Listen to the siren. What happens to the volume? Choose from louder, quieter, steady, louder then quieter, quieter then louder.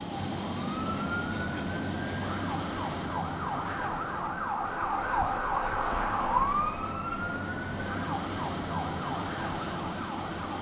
louder then quieter.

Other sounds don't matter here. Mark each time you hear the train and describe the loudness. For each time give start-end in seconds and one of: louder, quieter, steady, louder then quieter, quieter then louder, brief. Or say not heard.
0.0-10.5 quieter then louder.